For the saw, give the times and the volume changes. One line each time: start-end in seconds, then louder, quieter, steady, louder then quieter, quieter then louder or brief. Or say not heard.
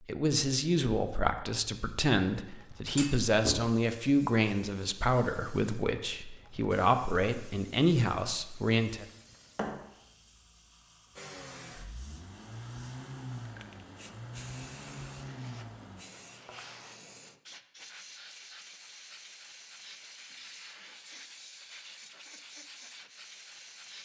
not heard.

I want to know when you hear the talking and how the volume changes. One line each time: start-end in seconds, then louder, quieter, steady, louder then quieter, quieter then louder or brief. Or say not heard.
0.1-9.1 steady.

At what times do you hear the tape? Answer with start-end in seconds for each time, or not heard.
not heard.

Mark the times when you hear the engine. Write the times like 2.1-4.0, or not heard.
11.2-16.1.